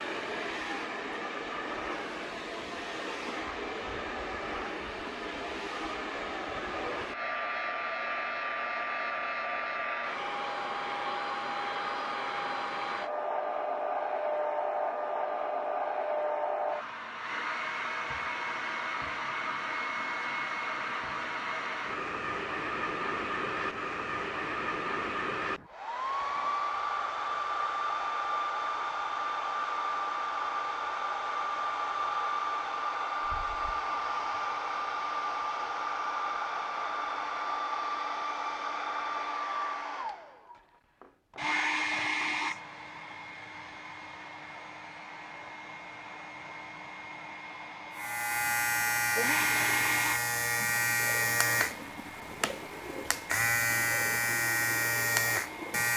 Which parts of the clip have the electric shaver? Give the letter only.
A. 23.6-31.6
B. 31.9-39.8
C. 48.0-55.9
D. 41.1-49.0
C.